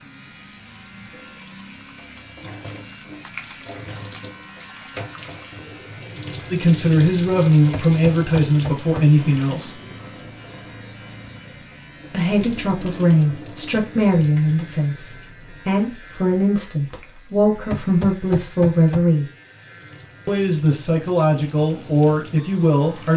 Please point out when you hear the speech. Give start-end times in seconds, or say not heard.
6.5-9.8, 12.1-19.2, 20.2-23.1.